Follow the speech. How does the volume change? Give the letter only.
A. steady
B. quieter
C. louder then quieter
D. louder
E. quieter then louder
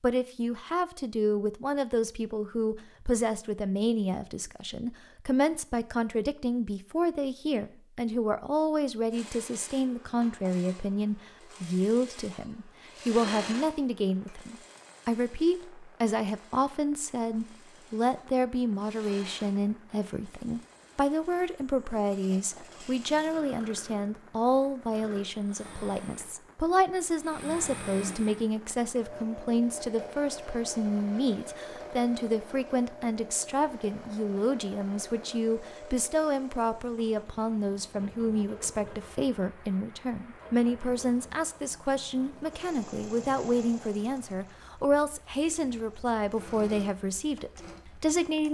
A.